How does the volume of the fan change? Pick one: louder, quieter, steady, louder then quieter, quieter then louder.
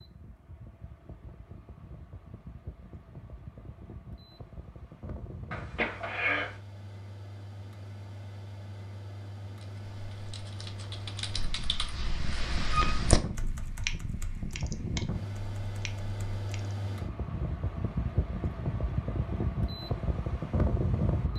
louder.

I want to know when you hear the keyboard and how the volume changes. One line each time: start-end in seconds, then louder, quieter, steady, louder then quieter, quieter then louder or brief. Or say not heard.
9.6-16.8 louder then quieter.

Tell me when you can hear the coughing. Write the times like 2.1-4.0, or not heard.
5.5-6.5.